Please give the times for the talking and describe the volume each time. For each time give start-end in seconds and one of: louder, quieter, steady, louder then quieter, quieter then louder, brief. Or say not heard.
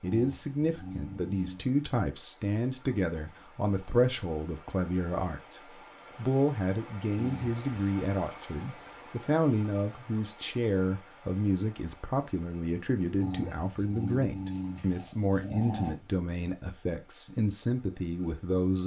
0.0-18.8 steady.